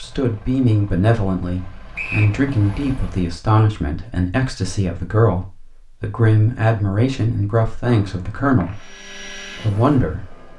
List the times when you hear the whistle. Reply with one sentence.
The whistle can be heard from 1.9 to 2.4 s and from 7.9 to 8.8 s.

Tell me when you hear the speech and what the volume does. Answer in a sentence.
You can hear the speech from 0.0 to 8.8 s, at a steady volume; and briefly from 9.6 to 10.3 s.